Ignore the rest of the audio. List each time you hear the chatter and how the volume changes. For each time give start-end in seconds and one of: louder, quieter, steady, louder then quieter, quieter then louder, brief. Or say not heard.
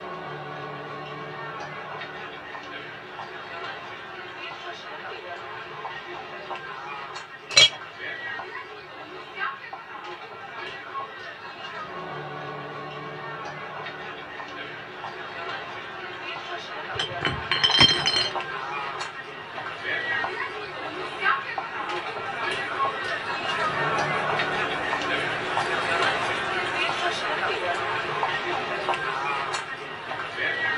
0.0-30.7 louder.